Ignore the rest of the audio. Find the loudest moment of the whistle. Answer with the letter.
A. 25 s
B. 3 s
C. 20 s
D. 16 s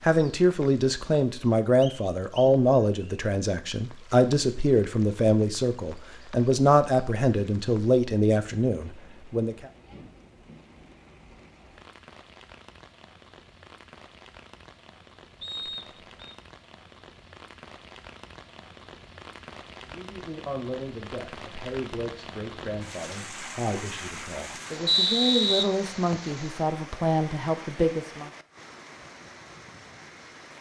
A.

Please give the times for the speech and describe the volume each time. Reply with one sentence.
The speech can be heard from 0.0 to 9.7 s, at a steady volume; and from 19.9 to 28.3 s, getting louder.